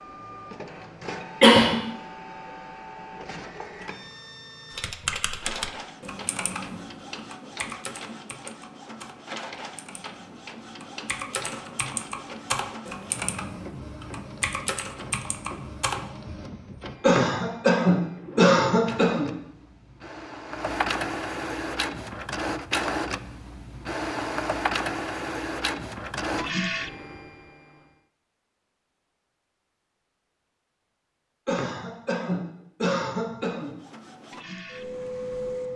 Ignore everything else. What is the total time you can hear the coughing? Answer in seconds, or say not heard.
5 s.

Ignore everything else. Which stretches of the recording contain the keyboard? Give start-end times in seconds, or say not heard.
4.7-16.1.